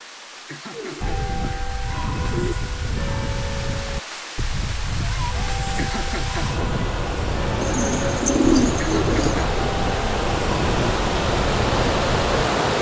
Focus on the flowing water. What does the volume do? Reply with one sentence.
The loudness of the flowing water goes up.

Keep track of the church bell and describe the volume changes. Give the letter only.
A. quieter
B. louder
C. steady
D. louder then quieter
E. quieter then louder
C.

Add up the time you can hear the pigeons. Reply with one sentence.
The pigeons can be heard for 4 seconds in total.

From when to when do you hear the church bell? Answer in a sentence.
You can hear the church bell from 1.0 to 12.3 s.